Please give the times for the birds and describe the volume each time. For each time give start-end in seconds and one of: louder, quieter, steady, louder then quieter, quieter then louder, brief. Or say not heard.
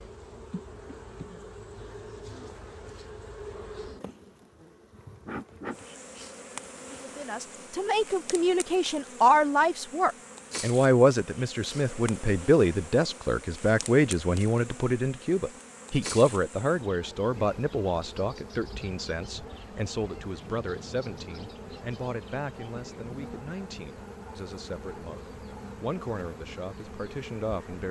not heard.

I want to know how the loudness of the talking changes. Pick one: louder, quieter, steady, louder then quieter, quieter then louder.
quieter.